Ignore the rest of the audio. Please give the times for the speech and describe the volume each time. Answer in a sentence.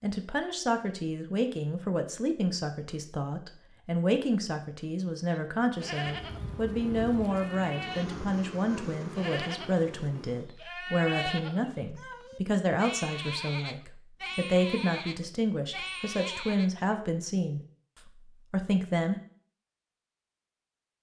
The speech can be heard from 0.0 to 19.1 s, at a steady volume.